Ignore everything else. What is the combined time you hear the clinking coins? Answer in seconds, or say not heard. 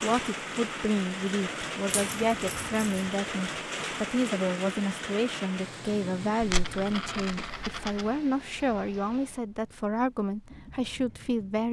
3 s.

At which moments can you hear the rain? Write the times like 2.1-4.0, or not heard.
0.0-11.6.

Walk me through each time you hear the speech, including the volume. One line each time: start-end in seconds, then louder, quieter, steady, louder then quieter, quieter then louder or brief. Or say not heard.
0.0-11.6 steady.